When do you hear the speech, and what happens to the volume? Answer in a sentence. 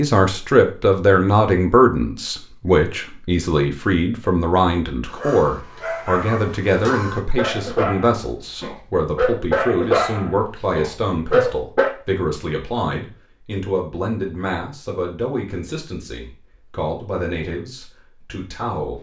The speech can be heard from 0.0 to 18.9 s, getting quieter.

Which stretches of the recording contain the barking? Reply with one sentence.
The barking can be heard from 5.0 to 11.9 s.